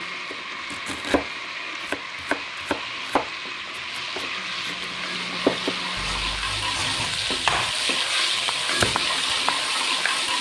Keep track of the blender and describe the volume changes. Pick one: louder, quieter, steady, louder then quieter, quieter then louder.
steady.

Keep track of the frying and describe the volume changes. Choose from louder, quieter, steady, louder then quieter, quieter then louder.
louder.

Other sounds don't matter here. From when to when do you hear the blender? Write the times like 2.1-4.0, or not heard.
0.0-6.5.